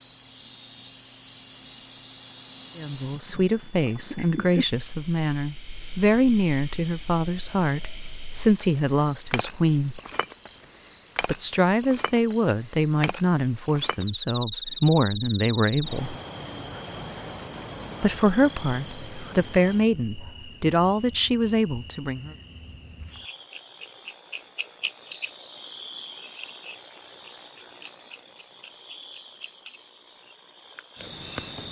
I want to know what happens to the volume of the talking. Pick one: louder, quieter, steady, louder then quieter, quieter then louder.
steady.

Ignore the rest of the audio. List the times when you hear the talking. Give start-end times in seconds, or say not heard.
2.8-10.0, 11.2-16.1, 18.0-22.4.